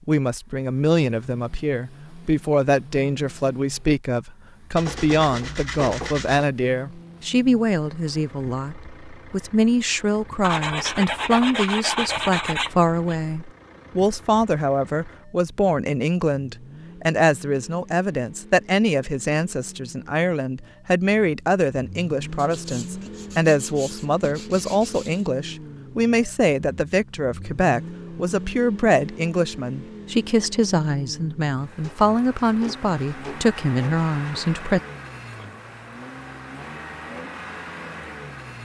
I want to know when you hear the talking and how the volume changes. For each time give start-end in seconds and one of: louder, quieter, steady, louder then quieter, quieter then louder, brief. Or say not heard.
0.1-34.8 steady.